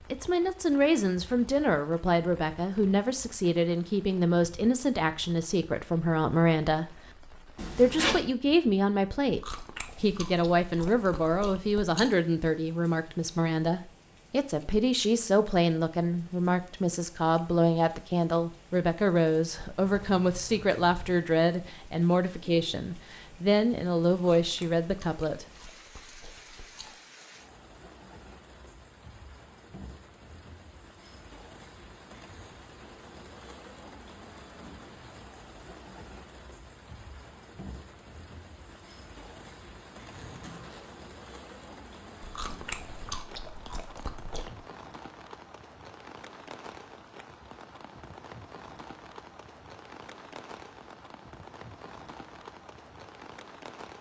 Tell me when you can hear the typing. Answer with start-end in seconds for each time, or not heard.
not heard.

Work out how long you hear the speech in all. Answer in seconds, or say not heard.
25 s.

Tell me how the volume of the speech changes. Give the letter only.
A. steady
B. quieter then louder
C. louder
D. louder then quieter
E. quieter
A.